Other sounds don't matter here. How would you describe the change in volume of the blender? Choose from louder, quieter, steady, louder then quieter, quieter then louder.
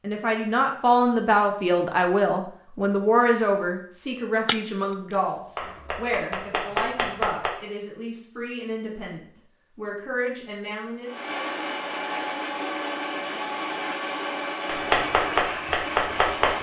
steady.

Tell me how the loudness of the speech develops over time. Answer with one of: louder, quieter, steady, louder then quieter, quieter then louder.
quieter.